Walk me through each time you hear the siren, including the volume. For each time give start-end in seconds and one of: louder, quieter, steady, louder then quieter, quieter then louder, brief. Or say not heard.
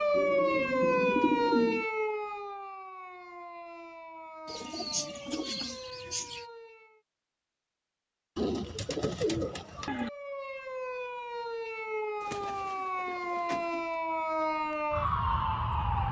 0.0-7.0 quieter
9.9-16.0 louder.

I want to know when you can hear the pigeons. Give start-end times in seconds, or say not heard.
0.1-1.9, 4.5-6.5, 8.3-10.1, 12.2-13.9.